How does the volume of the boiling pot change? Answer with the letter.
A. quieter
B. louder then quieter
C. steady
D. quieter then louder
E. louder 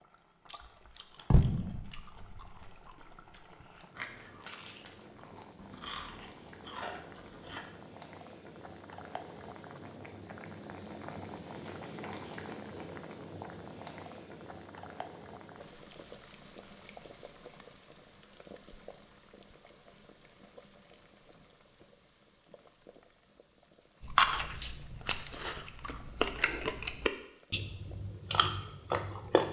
B.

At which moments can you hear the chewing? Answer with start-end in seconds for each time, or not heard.
0.5-7.6, 24.0-29.4.